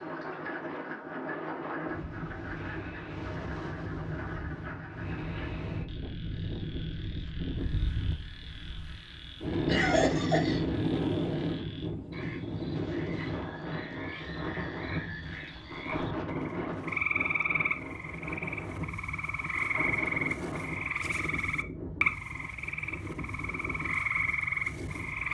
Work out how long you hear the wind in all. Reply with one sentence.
The wind can be heard for 25 seconds in total.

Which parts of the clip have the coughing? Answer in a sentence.
You can hear the coughing from 9.7 to 10.6 s.